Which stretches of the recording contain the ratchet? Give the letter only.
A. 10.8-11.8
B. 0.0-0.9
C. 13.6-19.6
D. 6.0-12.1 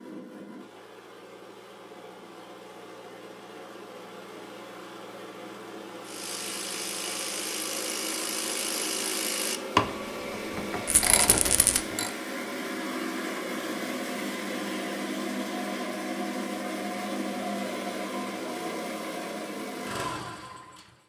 D.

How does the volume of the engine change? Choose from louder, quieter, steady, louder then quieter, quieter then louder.
louder.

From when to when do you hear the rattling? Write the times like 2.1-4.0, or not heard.
10.8-11.8.